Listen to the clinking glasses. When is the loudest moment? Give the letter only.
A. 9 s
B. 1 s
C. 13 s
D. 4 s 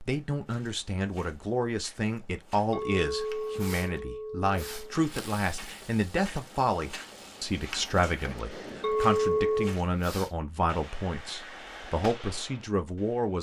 A.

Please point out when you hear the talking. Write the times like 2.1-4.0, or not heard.
0.0-13.3.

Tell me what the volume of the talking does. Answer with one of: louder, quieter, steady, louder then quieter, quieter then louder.
steady.